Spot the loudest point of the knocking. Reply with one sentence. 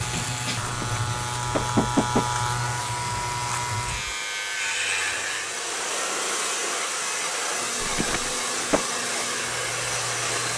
The loudest moment of the knocking is at 2 seconds.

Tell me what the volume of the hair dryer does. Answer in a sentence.
The loudness of the hair dryer goes up.